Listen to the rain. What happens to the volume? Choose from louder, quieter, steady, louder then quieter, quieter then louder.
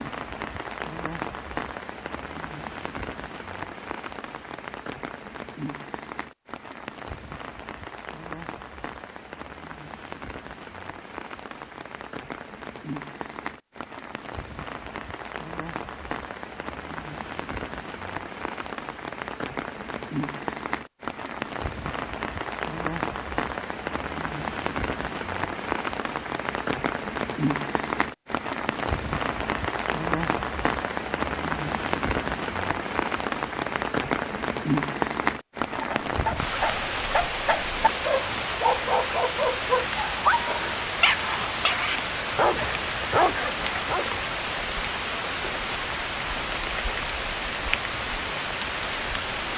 louder.